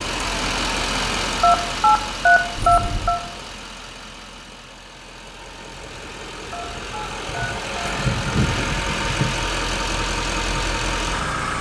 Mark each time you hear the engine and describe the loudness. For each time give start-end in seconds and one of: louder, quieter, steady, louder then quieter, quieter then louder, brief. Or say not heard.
0.0-11.5 quieter then louder.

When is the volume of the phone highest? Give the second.
2 s.